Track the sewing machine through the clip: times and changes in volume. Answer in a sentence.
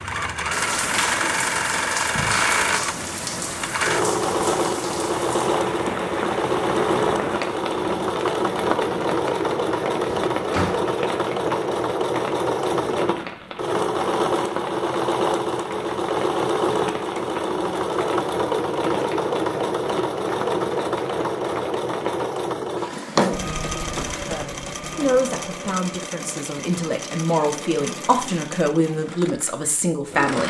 The sewing machine can be heard from 0.0 to 30.4 s, getting quieter.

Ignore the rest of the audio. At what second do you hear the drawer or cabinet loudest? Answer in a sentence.
The volume of the drawer or cabinet peaks at 23 seconds.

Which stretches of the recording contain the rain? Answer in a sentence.
You can hear the rain from 0.0 to 22.4 s.